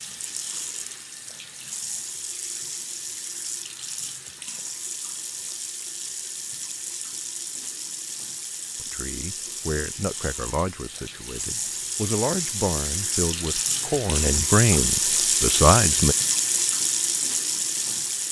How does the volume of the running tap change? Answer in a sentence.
The loudness of the running tap goes up.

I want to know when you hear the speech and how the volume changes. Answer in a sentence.
The speech can be heard from 8.8 to 16.1 s, getting louder.